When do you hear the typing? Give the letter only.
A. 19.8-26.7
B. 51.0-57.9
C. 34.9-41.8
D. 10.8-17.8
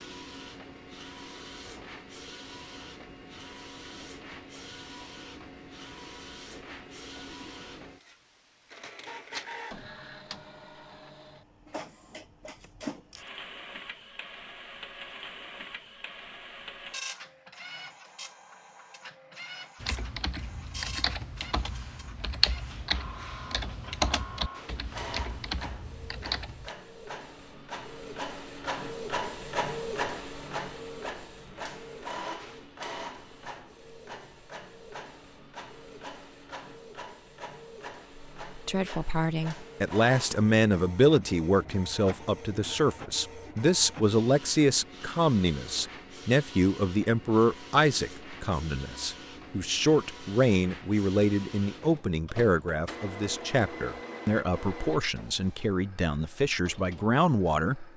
A.